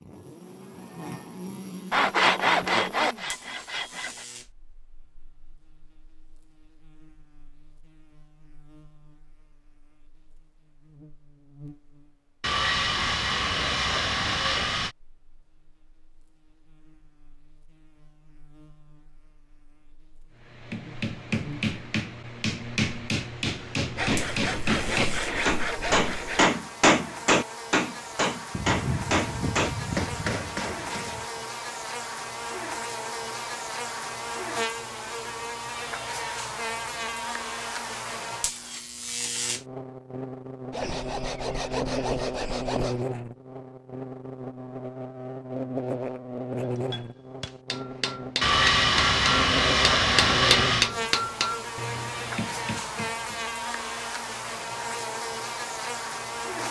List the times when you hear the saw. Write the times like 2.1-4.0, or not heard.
1.9-4.2, 12.4-14.9, 23.9-26.5, 28.5-31.3, 40.7-43.0, 48.4-50.9.